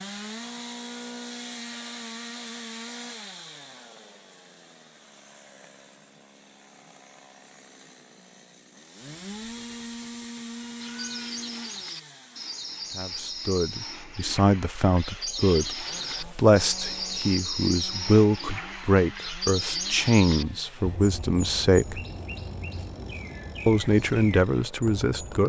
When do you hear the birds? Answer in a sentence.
The birds can be heard from 10.8 to 25.4 s.